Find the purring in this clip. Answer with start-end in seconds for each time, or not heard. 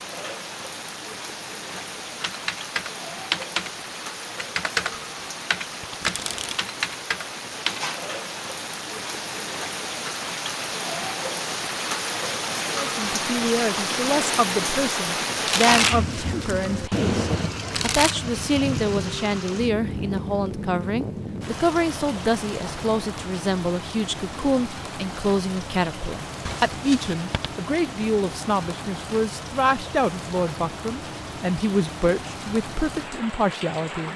not heard.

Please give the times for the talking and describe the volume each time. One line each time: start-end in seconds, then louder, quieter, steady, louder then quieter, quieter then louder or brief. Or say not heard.
12.8-34.1 steady.